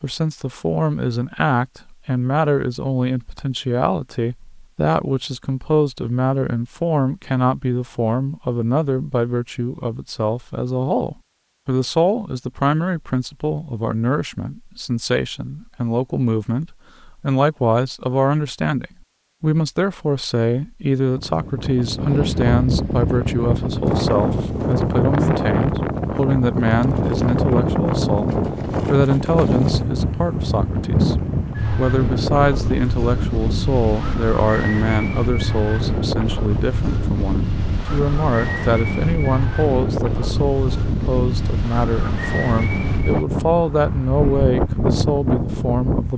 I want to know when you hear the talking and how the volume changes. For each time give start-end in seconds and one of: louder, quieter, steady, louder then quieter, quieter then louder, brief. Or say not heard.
0.0-46.1 steady.